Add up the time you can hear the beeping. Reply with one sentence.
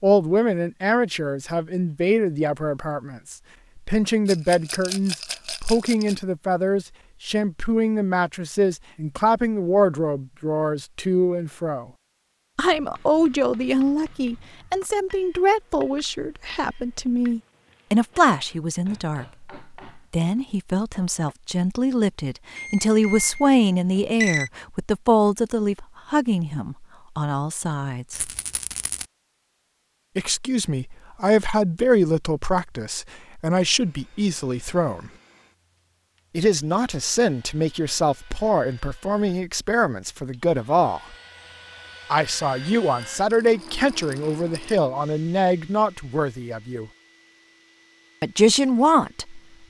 The beeping can be heard for 2 seconds in total.